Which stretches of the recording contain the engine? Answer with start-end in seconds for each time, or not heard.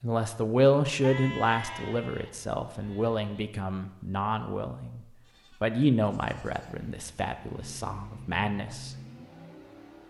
6.5-10.0.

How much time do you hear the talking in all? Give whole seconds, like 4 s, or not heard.
9 s.